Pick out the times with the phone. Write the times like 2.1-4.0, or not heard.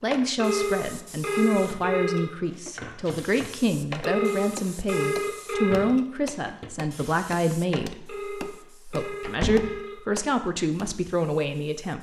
0.3-2.3, 4.0-6.0, 8.1-10.0.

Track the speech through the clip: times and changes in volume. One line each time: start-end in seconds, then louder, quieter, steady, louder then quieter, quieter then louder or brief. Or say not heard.
0.0-11.9 steady.